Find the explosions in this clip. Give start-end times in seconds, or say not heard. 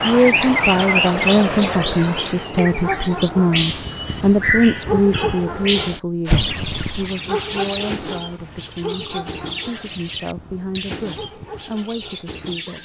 6.2-7.0.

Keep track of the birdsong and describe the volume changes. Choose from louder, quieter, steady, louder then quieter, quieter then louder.
quieter.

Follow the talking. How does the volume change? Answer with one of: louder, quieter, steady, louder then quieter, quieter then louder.
quieter.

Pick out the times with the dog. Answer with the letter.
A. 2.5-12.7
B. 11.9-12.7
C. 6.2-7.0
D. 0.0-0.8
A.